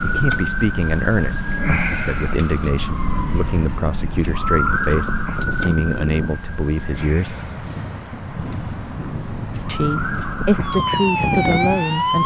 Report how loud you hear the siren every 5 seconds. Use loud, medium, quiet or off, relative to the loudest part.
loud, medium, loud.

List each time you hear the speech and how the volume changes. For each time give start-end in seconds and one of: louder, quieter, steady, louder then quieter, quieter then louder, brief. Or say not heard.
0.0-7.4 steady
9.7-12.2 brief.